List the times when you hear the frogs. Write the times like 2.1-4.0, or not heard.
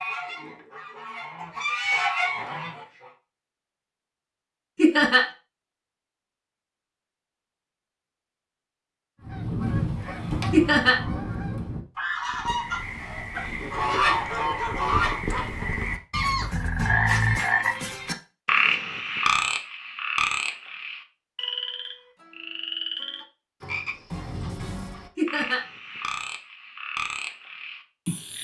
12.2-28.3.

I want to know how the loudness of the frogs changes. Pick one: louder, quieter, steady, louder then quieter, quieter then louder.
louder then quieter.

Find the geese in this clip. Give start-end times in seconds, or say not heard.
0.0-3.1, 9.2-15.7.